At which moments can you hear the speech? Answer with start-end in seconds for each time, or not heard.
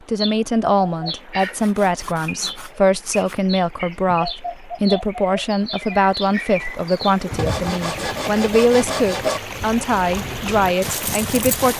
0.1-11.7.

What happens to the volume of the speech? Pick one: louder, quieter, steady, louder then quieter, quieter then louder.
steady.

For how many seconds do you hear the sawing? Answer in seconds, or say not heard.
4 s.